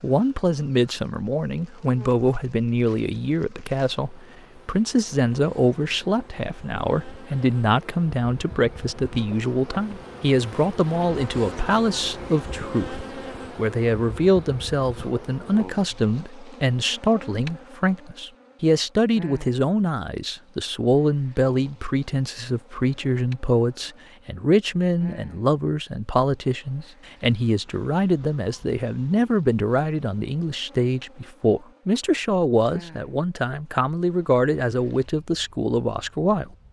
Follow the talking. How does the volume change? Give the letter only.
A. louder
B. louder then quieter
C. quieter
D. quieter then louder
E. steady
E.